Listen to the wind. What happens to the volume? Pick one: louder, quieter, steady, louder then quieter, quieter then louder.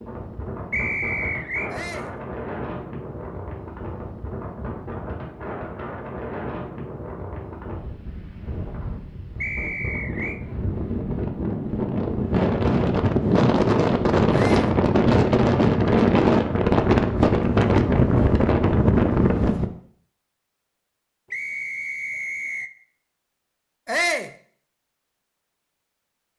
louder.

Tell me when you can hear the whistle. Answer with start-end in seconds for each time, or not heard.
0.7-1.7, 9.4-10.4, 21.3-22.7.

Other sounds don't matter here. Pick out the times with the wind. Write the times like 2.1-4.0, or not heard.
0.0-19.7.